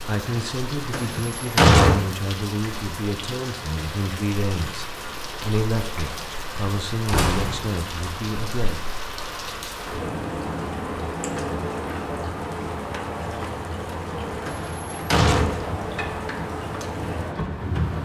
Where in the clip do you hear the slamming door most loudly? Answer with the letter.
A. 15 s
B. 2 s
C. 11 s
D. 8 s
B.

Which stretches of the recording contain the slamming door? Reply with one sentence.
The slamming door can be heard from 0.9 to 2.0 s, from 7.0 to 7.7 s and from 14.4 to 15.9 s.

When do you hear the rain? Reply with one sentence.
You can hear the rain from 0.0 to 18.0 s.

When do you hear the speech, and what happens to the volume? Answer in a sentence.
The speech can be heard from 0.1 to 8.8 s, at a steady volume.